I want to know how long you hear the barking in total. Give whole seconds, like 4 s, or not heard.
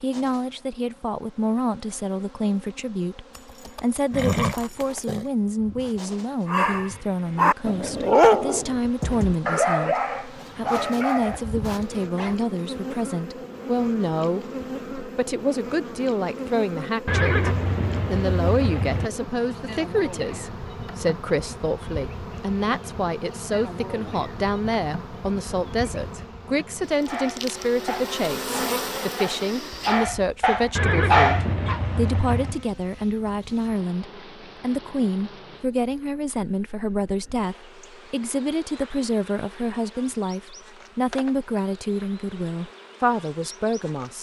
11 s.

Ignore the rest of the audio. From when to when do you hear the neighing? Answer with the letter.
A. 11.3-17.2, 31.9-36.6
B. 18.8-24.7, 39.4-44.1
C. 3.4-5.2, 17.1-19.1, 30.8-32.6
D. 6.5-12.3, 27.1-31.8
C.